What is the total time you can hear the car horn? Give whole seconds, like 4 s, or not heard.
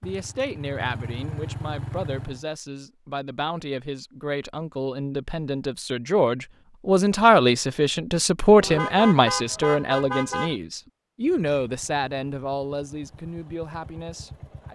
2 s.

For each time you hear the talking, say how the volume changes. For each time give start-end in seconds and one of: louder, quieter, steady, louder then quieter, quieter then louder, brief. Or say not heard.
0.0-14.6 louder then quieter.